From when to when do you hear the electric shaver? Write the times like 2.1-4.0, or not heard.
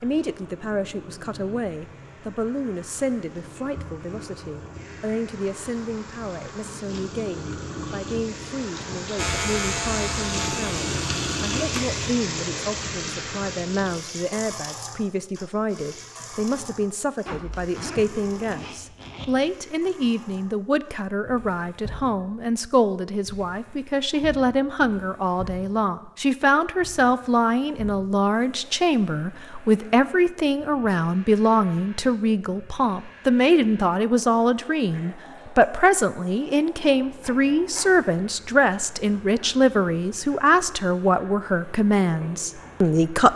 9.2-12.0.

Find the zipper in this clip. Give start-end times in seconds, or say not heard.
17.2-19.2.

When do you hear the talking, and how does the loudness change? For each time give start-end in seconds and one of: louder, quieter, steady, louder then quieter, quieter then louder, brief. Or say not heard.
0.0-43.3 louder.